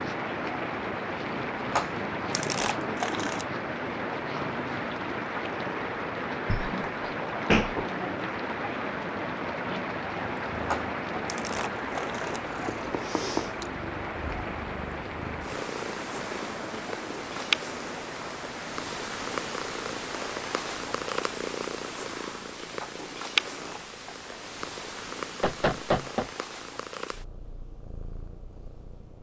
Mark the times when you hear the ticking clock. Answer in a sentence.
The ticking clock can't be heard in this clip.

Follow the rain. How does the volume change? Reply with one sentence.
The loudness of the rain goes down.